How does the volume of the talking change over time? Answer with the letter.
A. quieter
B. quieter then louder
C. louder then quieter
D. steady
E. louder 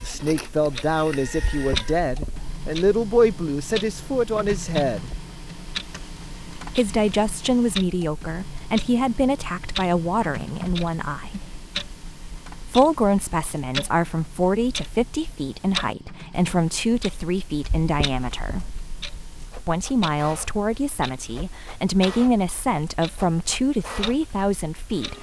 D.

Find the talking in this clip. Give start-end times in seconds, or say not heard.
0.0-5.1, 6.7-11.5, 12.6-18.8, 19.6-25.1.